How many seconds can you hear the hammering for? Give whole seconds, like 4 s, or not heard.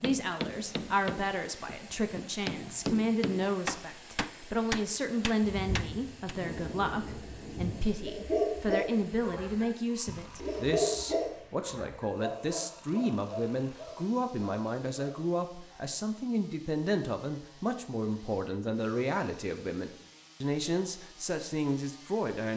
6 s.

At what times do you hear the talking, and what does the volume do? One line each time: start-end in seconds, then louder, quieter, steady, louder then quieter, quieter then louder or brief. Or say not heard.
0.0-22.5 steady.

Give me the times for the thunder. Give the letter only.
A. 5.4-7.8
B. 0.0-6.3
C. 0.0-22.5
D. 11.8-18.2
A.